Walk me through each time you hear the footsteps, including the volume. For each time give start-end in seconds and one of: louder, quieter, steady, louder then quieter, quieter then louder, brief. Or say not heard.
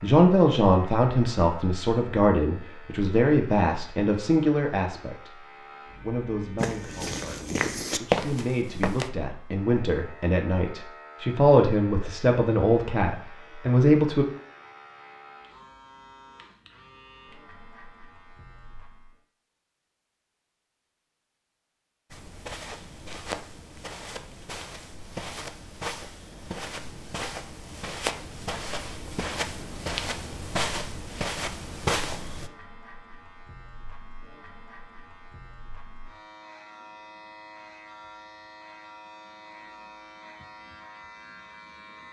6.5-9.1 brief
22.1-32.5 louder.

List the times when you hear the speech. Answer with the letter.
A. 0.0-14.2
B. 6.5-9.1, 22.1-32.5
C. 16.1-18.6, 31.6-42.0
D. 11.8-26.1
A.